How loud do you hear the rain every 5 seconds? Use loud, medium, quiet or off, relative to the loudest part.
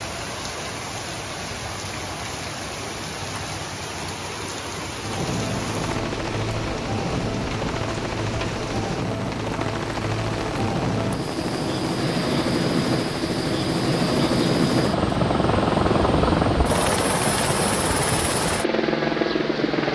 loud, loud, loud, medium.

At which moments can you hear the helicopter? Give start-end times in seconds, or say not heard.
5.0-19.9.